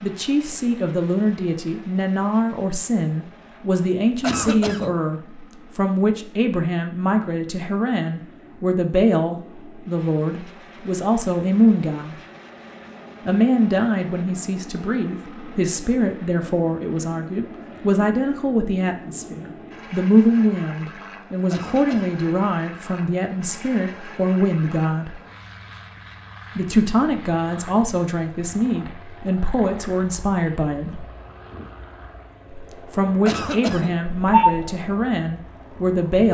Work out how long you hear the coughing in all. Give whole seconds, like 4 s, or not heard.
2 s.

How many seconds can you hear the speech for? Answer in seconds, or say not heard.
32 s.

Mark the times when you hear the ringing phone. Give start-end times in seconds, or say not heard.
34.1-34.6.